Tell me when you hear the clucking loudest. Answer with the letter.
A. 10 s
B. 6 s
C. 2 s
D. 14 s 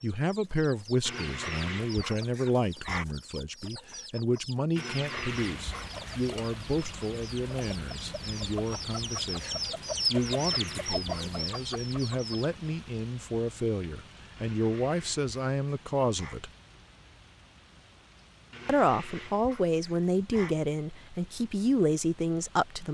A.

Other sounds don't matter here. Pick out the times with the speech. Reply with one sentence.
You can hear the speech from 0.0 to 16.5 s and from 18.6 to 22.9 s.